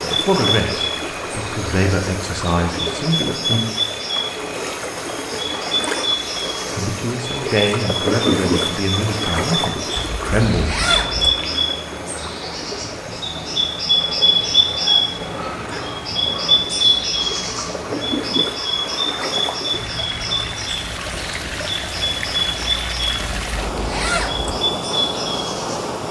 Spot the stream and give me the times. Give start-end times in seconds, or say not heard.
0.0-26.0.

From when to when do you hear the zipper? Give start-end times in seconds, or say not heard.
9.9-11.3, 23.1-24.6.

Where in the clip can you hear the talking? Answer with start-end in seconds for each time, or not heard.
0.0-3.6, 6.8-10.9.